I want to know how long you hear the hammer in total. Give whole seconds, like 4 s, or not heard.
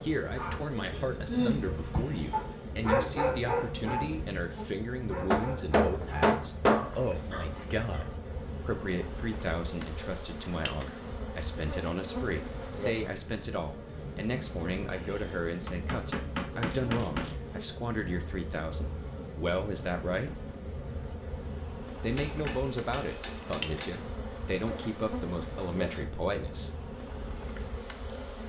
5 s.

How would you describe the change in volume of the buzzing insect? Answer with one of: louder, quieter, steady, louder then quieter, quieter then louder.
steady.